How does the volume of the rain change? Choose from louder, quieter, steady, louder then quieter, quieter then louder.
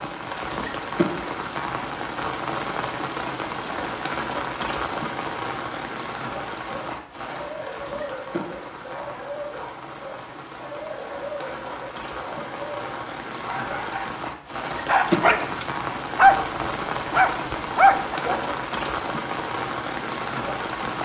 quieter then louder.